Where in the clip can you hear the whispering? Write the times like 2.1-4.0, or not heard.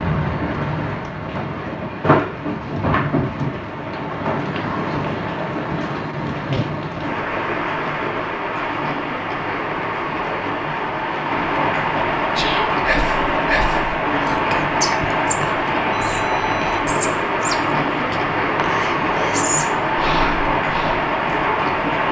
12.3-21.1.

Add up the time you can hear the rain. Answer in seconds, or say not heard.
22 s.